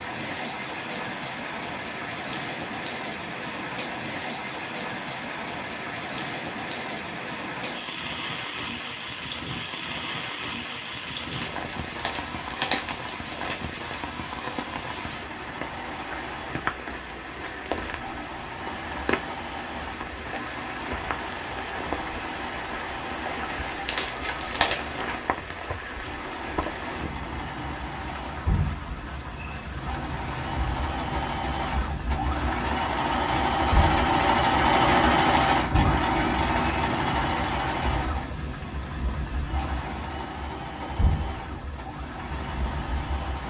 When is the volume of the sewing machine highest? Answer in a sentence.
The volume of the sewing machine peaks at 35 seconds.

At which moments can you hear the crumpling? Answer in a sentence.
The crumpling can be heard from 11.3 to 13.8 s and from 23.9 to 24.9 s.